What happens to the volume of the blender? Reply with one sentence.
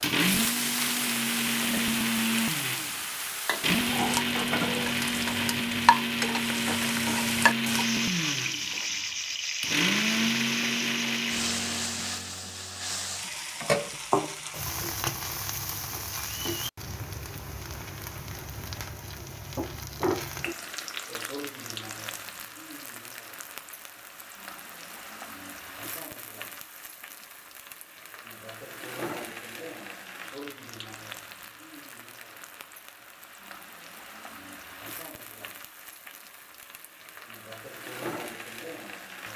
The volume of the blender stays about the same.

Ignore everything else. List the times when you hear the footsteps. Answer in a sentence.
You can't hear the footsteps here.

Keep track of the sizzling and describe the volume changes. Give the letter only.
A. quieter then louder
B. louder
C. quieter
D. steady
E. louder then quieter
C.